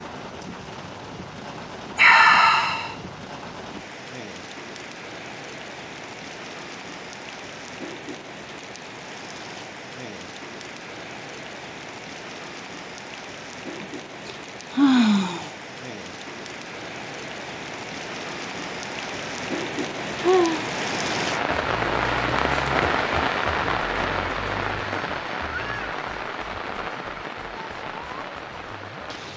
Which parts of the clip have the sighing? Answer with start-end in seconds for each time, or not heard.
1.9-3.0, 13.8-15.5, 20.2-20.6.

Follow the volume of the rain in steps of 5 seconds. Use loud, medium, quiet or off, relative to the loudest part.
quiet, quiet, quiet, medium, loud, medium.